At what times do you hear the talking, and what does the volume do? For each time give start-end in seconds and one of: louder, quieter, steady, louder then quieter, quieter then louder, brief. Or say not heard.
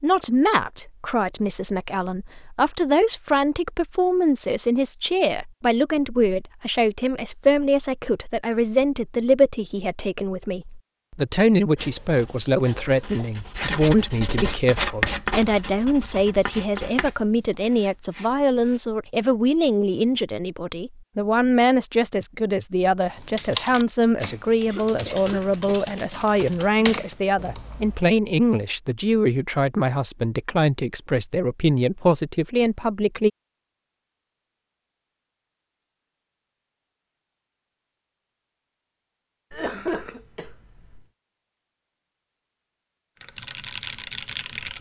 0.0-33.3 steady.